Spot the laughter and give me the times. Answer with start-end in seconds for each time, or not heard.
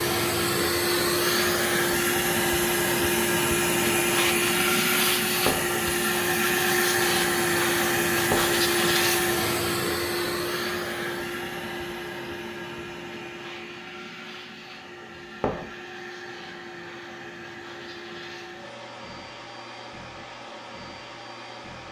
not heard.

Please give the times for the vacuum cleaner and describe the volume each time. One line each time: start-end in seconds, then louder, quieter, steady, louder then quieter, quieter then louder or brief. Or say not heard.
0.0-21.8 quieter.